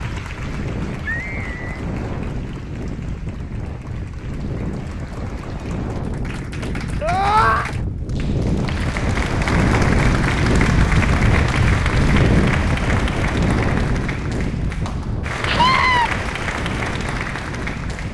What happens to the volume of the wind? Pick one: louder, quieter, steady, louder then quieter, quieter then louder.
louder then quieter.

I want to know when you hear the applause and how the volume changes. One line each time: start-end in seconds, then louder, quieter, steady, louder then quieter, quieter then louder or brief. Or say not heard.
0.0-18.0 louder.